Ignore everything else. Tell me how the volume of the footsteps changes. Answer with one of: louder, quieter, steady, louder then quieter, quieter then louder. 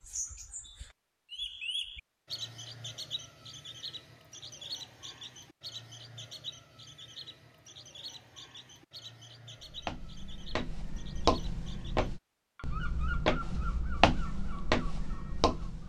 louder.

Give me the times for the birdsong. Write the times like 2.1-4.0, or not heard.
0.0-15.8.